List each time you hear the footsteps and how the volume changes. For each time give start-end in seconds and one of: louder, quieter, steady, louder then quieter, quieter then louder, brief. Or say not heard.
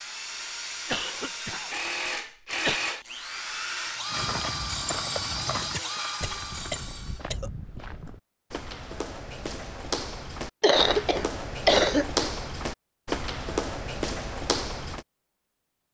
4.0-15.1 quieter then louder.